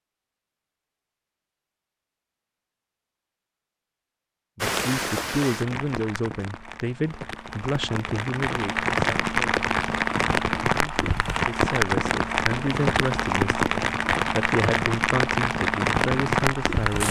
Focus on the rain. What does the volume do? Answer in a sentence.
The loudness of the rain goes up.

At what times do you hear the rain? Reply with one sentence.
You can hear the rain from 4.6 to 17.0 s.